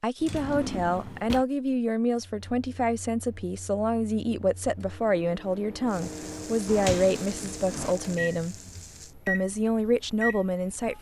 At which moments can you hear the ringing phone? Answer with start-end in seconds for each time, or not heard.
not heard.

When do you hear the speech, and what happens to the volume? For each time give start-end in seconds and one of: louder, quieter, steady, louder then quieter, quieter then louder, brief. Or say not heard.
0.0-8.6 steady
9.2-10.9 brief.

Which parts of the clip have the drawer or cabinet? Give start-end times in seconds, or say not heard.
0.2-1.4, 6.7-8.0.